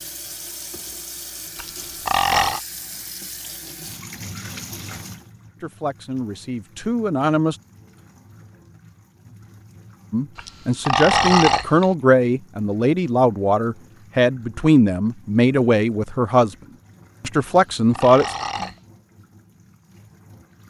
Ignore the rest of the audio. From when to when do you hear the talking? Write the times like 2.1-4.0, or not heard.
5.6-7.5, 10.1-16.6, 17.2-18.4.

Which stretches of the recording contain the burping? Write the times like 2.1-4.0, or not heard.
1.6-2.6, 10.3-11.8, 17.4-18.8.